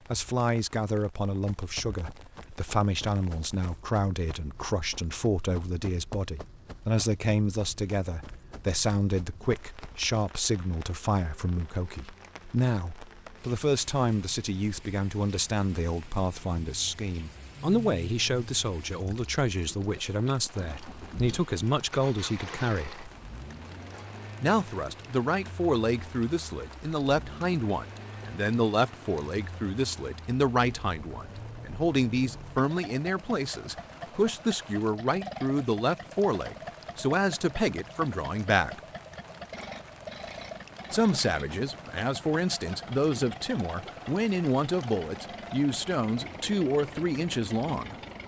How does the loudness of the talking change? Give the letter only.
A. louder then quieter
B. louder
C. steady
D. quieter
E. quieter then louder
C.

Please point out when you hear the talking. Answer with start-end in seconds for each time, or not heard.
0.1-23.1, 24.4-38.8, 40.9-48.0.